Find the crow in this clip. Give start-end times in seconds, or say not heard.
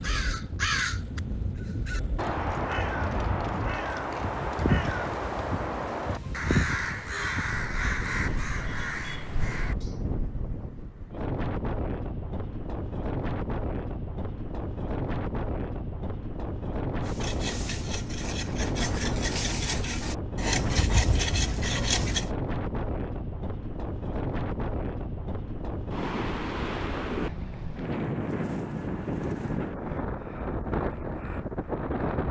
0.0-9.9.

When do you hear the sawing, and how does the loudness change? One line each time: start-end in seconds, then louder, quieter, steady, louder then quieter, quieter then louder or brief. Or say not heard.
17.0-22.3 louder.